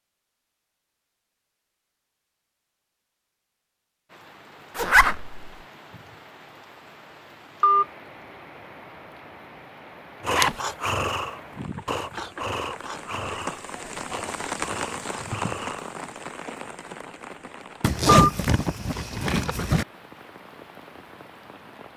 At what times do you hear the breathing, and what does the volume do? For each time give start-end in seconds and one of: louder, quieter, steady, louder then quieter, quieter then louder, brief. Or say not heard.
10.2-15.9 quieter.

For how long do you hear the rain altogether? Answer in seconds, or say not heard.
18 s.